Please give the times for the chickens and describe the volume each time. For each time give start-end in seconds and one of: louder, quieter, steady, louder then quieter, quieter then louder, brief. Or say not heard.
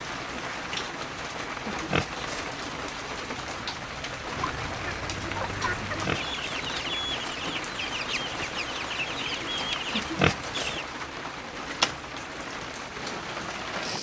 4.3-10.8 steady.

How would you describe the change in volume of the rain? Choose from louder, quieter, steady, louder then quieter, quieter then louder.
steady.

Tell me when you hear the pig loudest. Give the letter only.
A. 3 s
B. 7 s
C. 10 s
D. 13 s
C.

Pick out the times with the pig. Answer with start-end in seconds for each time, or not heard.
1.7-2.5, 5.8-6.7, 9.9-10.8.